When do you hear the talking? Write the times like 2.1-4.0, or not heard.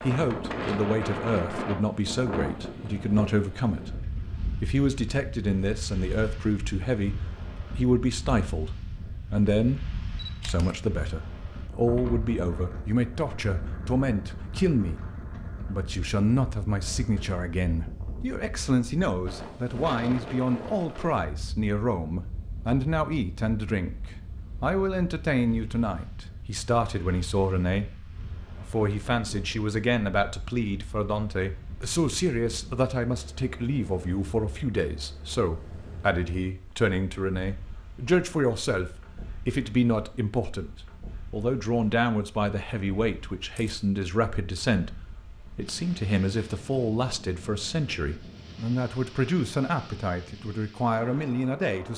0.0-15.0, 15.7-51.9.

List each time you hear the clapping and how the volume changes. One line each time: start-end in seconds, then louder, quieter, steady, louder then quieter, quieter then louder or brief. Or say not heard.
not heard.